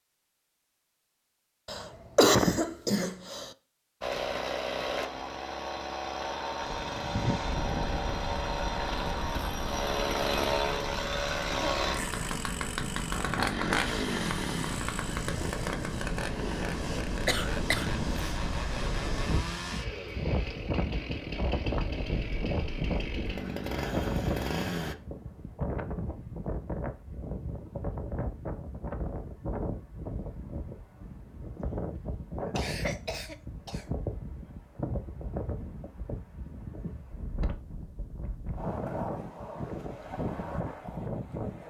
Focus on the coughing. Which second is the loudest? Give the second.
2 s.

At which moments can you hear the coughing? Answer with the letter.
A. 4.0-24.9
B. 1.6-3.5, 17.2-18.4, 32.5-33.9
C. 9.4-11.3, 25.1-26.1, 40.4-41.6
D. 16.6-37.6
B.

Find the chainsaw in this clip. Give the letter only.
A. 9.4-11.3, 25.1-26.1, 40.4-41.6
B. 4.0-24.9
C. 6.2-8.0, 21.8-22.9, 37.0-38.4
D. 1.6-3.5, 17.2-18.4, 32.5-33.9
B.